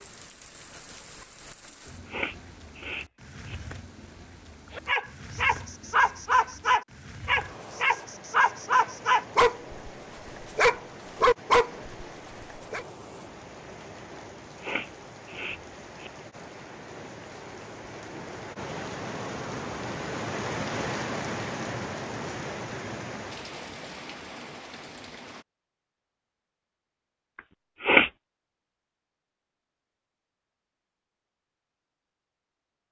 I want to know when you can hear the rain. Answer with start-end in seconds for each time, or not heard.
0.0-25.4.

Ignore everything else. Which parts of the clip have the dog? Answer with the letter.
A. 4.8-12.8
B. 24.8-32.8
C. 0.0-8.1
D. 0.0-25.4
A.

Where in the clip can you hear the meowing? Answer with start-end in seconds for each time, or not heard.
not heard.